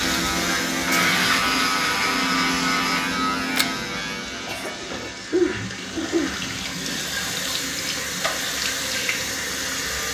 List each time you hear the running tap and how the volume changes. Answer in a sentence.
You can hear the running tap from 0.0 to 10.0 s, getting quieter then louder.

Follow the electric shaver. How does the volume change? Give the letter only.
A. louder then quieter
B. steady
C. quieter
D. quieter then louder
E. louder
C.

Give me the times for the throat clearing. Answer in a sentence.
The throat clearing can be heard from 4.5 to 7.0 s.